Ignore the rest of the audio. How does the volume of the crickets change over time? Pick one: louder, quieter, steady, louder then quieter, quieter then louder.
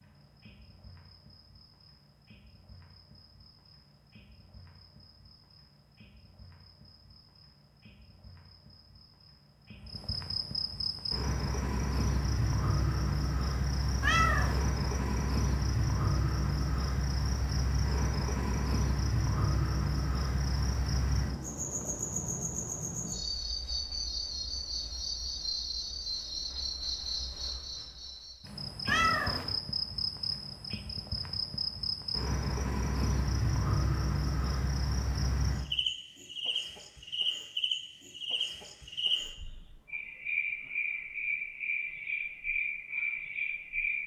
louder.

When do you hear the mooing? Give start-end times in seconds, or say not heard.
not heard.